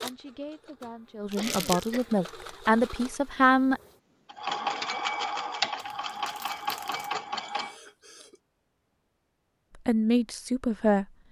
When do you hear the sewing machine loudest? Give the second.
5 s.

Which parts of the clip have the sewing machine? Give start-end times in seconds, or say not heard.
0.0-7.8.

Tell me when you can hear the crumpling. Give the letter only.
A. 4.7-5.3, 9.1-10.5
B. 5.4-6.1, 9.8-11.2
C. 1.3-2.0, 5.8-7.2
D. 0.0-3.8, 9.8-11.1
C.